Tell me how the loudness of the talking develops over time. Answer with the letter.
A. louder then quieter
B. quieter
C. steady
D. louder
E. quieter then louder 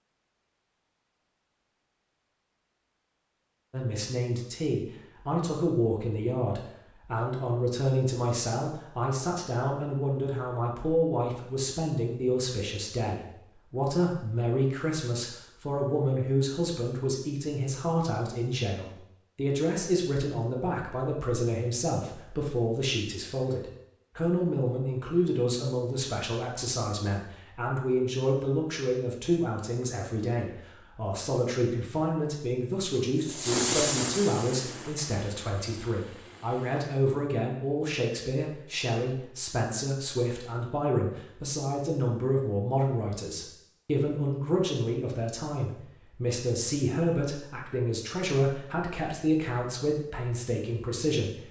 C.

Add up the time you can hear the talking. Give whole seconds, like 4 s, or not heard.
48 s.